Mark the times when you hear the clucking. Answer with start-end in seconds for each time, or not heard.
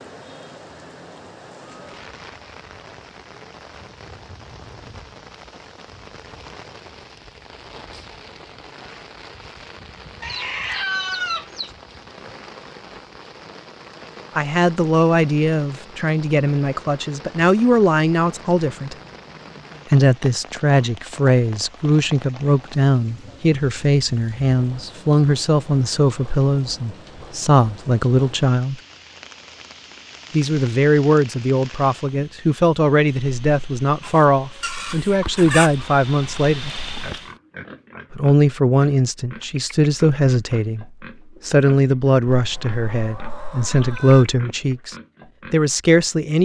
10.2-11.7, 42.2-44.4.